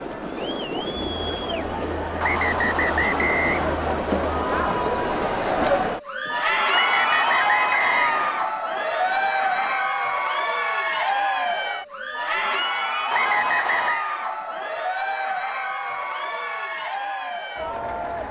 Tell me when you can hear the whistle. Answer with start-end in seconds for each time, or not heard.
2.2-3.8, 6.7-8.3, 13.1-14.1.